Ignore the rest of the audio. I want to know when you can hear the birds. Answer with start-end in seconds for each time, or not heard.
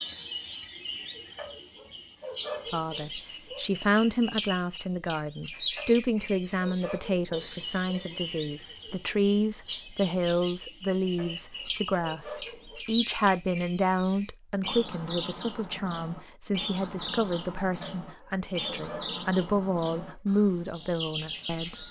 0.0-21.8.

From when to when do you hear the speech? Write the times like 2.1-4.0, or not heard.
2.7-21.8.